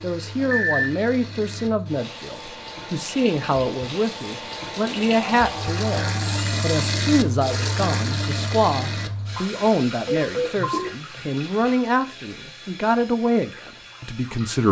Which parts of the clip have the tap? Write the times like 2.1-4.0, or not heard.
0.0-14.6.